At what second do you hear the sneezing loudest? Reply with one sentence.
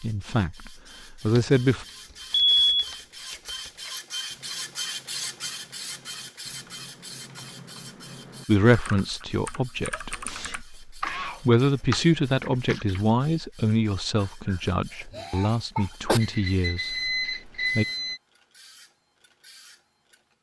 The volume of the sneezing peaks at 16 seconds.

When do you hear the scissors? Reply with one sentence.
The scissors can't be heard in this clip.